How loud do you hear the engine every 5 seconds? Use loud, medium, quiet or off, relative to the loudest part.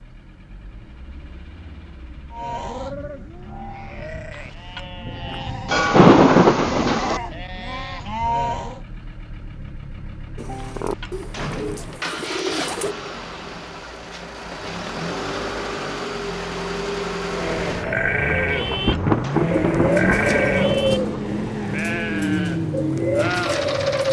quiet, quiet, medium, loud, loud.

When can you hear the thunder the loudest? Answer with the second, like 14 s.
6 s.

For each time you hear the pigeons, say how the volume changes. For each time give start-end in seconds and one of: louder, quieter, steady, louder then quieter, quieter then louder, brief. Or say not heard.
10.3-12.9 brief
19.5-24.0 quieter then louder.